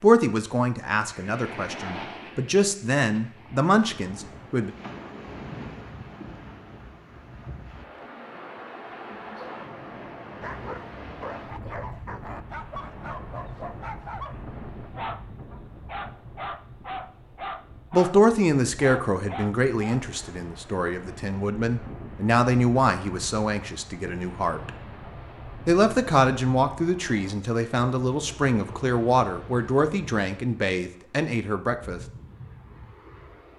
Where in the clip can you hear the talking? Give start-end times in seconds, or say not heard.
0.0-4.7, 17.9-24.7, 25.6-32.0.